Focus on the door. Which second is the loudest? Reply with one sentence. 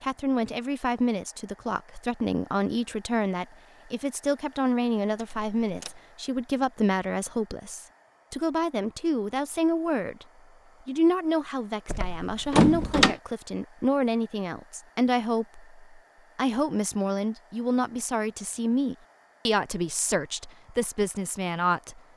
The loudest moment of the door is at 13 seconds.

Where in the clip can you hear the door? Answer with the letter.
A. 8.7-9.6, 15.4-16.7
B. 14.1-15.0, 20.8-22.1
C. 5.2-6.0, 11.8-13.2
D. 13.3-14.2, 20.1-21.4
C.